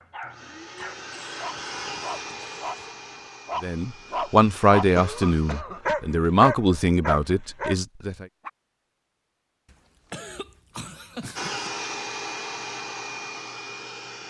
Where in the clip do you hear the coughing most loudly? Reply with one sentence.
The loudest moment of the coughing is at 5 seconds.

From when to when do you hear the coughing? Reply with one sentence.
The coughing can be heard from 0.8 to 3.0 s, from 5.0 to 5.8 s and from 9.7 to 11.7 s.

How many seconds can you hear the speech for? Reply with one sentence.
You can hear the speech for 5 seconds altogether.